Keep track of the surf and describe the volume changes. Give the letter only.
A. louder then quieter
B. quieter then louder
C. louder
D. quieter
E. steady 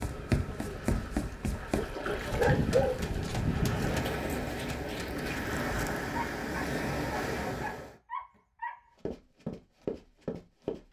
C.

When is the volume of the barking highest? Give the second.
3 s.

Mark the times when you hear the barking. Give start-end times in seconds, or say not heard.
2.3-3.8, 6.1-8.8.